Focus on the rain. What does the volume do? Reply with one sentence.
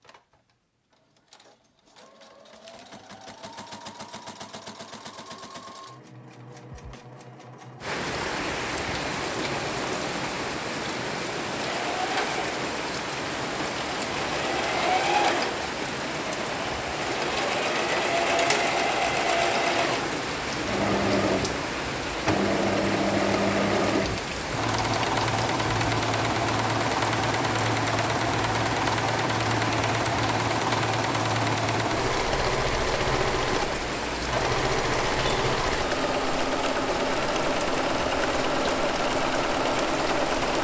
The volume of the rain stays about the same.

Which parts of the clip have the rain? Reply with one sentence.
You can hear the rain from 7.8 to 40.6 s.